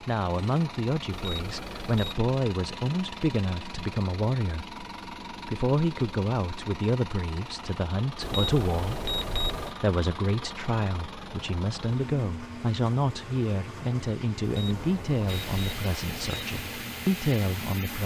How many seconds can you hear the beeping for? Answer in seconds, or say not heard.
5 s.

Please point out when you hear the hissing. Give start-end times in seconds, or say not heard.
15.2-18.0.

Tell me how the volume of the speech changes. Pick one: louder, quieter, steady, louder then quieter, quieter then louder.
steady.